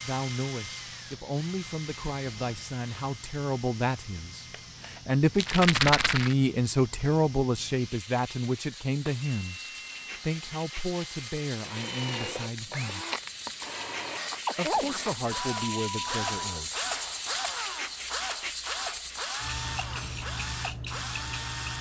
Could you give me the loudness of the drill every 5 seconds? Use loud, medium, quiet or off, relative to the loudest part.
medium, quiet, loud, loud, loud.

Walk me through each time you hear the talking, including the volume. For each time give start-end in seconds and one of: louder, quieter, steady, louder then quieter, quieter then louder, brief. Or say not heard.
0.0-13.1 louder then quieter
14.6-16.8 brief.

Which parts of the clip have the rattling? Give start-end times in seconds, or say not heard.
5.3-6.3.